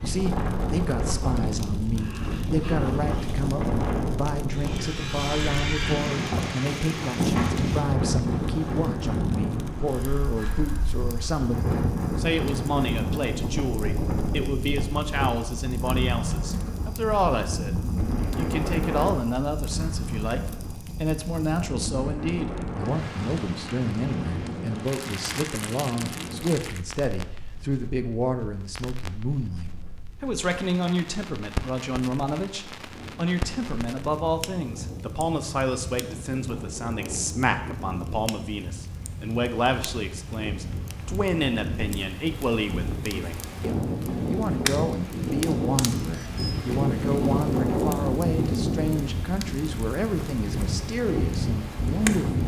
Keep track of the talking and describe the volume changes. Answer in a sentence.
The loudness of the talking stays about the same.